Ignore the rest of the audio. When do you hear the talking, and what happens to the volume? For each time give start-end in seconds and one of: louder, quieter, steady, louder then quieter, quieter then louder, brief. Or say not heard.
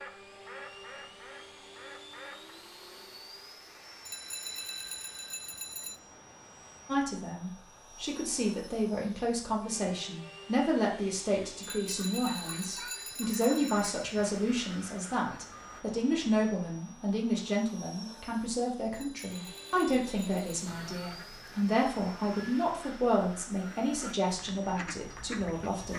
6.8-25.9 steady.